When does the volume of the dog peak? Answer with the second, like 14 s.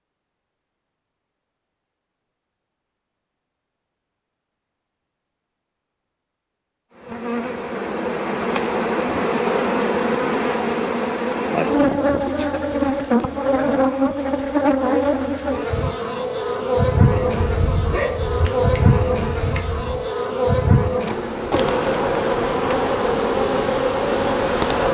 18 s.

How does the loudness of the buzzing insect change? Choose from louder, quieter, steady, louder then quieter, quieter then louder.
steady.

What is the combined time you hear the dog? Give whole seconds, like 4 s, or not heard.
3 s.